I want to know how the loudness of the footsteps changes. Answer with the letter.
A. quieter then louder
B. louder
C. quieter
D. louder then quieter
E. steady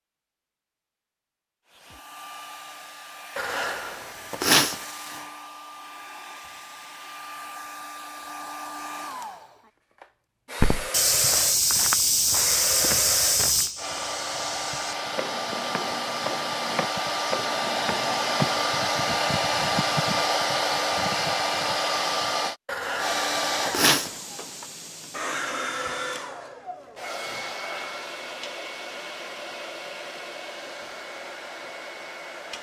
C.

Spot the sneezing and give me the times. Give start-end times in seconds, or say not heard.
3.4-4.8, 22.6-24.1.